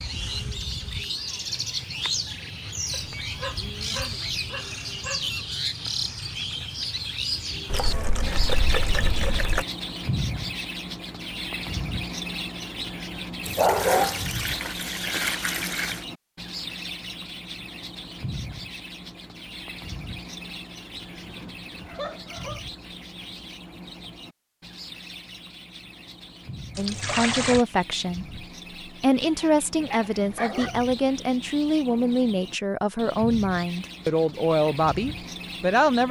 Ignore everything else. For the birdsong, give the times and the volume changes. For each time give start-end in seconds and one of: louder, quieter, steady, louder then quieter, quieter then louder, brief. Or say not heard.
0.0-36.0 quieter.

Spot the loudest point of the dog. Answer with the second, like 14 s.
14 s.